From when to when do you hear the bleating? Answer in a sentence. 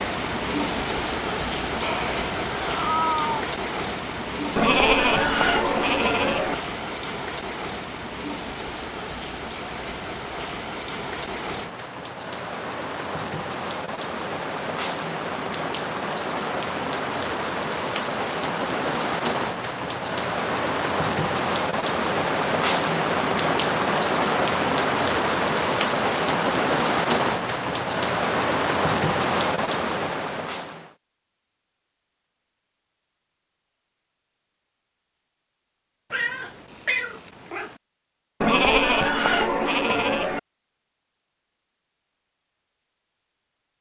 You can hear the bleating from 4.5 to 6.5 s and from 38.4 to 40.4 s.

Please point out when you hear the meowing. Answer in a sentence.
You can hear the meowing from 1.8 to 3.5 s and from 36.1 to 37.8 s.